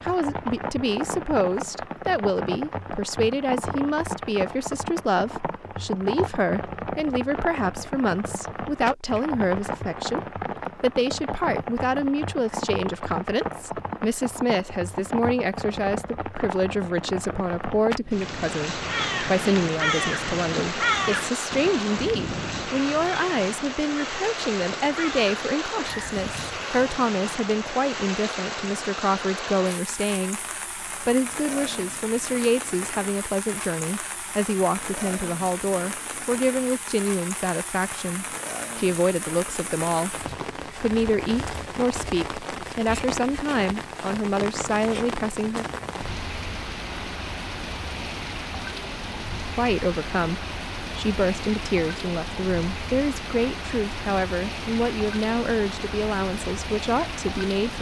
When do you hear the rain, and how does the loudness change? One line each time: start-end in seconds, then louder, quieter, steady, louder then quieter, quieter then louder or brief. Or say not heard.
0.0-57.7 steady.